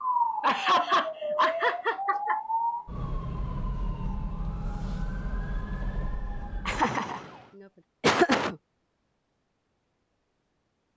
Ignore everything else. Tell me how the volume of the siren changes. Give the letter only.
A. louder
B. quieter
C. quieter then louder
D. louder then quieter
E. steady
B.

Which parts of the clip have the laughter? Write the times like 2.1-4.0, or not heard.
0.4-2.4, 6.7-7.2, 8.0-8.6.